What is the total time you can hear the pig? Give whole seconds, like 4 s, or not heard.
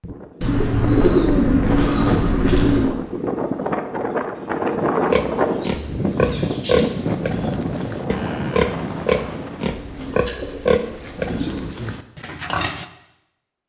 8 s.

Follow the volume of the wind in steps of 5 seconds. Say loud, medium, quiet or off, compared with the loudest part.
loud, loud, off.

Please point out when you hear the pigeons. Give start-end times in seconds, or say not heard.
0.4-3.0, 5.3-6.9, 9.7-11.7.